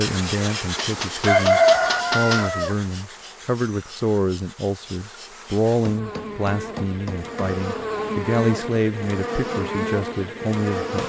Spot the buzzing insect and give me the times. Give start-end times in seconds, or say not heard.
0.0-11.0.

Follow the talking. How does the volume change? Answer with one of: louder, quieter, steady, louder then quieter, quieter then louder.
steady.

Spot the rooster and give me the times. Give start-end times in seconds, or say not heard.
1.2-2.8.